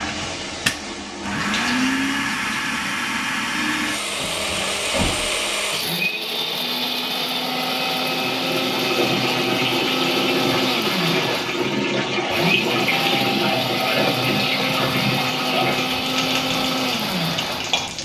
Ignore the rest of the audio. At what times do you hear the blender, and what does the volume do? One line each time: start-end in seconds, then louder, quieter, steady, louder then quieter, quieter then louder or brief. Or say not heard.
0.0-17.9 steady.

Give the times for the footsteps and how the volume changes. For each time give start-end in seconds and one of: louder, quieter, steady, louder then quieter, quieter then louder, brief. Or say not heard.
not heard.